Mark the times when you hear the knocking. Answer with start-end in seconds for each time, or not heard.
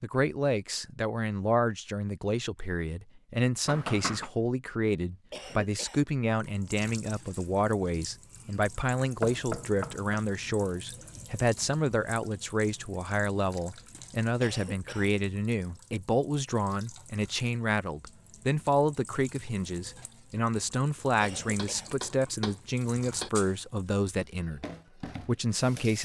3.6-4.3, 9.2-10.0, 21.6-23.3.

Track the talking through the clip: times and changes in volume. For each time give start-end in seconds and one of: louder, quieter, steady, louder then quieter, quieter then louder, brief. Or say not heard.
0.0-25.9 steady.